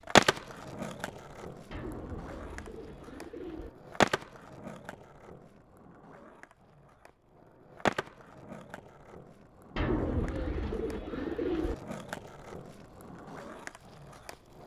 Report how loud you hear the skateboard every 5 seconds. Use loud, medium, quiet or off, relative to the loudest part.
loud, medium, quiet.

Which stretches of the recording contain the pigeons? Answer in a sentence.
You can hear the pigeons from 1.7 to 3.7 s and from 9.8 to 11.8 s.